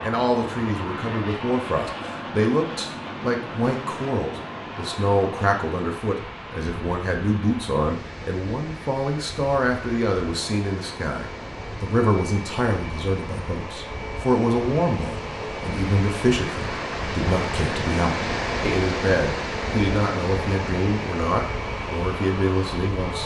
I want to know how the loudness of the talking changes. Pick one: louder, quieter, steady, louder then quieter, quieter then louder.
steady.